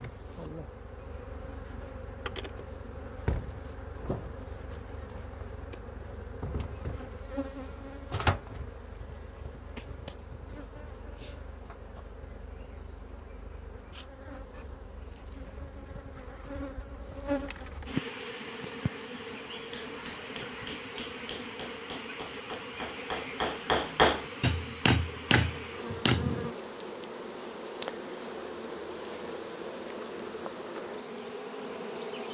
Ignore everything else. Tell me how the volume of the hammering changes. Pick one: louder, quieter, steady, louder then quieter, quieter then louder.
louder.